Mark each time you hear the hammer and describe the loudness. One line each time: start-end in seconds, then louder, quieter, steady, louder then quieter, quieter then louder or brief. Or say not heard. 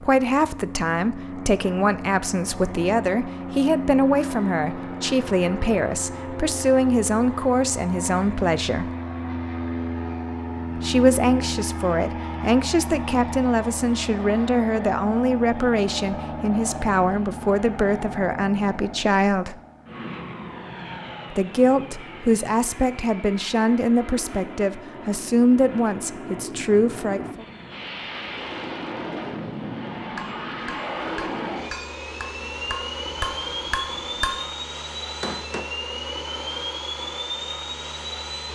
29.9-35.6 louder.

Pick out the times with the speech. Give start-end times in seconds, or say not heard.
0.0-8.9, 10.8-19.6, 21.3-27.4.